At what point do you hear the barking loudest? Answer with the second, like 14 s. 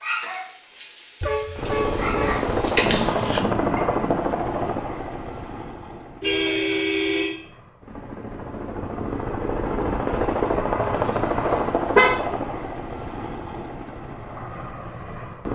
3 s.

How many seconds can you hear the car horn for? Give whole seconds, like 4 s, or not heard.
4 s.